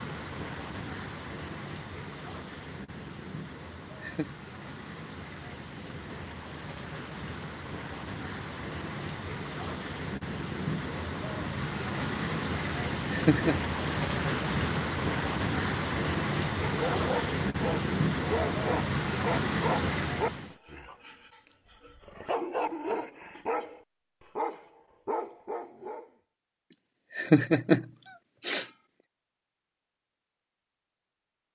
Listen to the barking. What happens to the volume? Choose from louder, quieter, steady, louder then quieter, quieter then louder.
quieter then louder.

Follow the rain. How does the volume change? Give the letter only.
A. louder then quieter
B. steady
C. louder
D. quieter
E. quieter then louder
C.